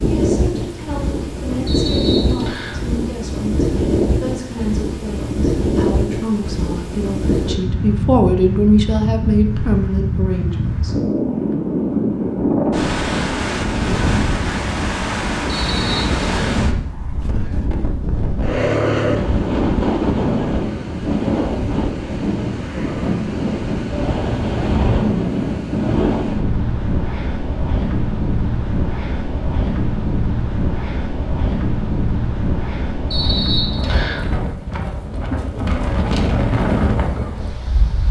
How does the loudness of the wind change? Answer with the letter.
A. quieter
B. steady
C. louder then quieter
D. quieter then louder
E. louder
B.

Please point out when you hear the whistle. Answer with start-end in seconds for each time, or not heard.
1.6-2.8, 15.4-16.6, 33.1-34.2.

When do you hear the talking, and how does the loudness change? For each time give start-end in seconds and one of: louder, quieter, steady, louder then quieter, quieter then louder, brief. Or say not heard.
0.0-10.9 louder.